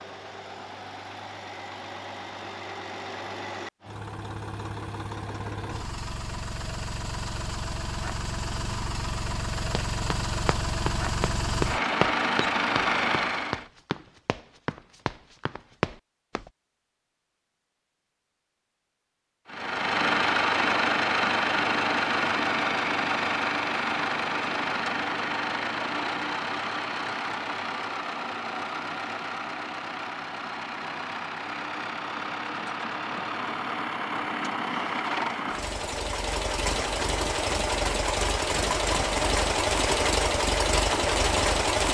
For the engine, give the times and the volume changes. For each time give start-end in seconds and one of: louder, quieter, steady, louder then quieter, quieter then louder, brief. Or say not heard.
0.0-13.7 louder
19.4-41.8 quieter then louder.